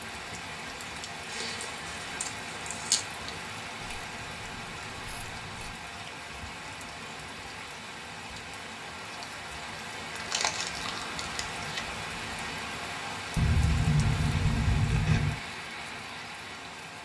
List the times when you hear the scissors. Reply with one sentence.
The scissors can be heard from 3.8 to 5.8 s and from 13.3 to 15.4 s.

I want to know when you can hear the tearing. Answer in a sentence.
The tearing can be heard from 1.2 to 3.0 s and from 10.1 to 11.8 s.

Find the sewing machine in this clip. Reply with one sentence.
You can't hear the sewing machine here.